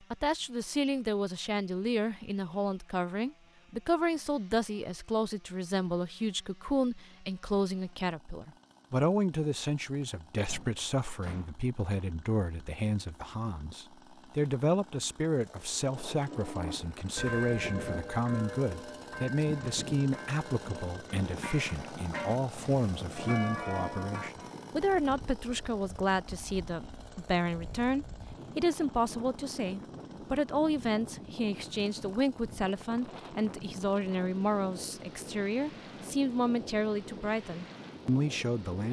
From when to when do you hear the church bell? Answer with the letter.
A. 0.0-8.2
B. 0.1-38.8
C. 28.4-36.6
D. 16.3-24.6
D.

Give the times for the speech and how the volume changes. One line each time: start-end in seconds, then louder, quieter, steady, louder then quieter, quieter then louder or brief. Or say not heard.
0.1-38.8 steady.